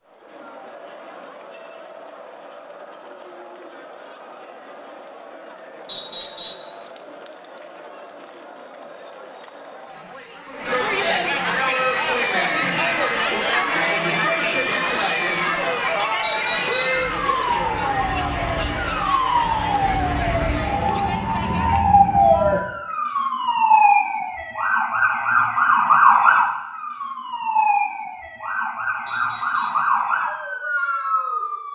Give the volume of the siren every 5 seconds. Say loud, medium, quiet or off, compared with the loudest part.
off, off, medium, medium, loud, loud, medium.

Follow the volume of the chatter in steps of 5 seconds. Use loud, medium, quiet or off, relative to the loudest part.
quiet, quiet, loud, loud, medium, off, off.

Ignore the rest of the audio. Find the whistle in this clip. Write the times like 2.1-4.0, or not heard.
5.8-6.7, 16.2-17.1, 29.1-29.9.